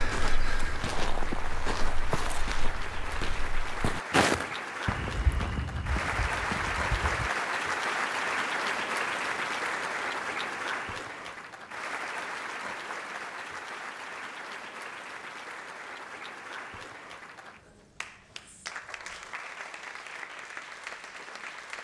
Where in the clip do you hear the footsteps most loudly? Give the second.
4 s.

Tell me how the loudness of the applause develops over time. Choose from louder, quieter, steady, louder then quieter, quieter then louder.
louder then quieter.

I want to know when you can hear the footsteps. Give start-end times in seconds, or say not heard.
0.0-7.3.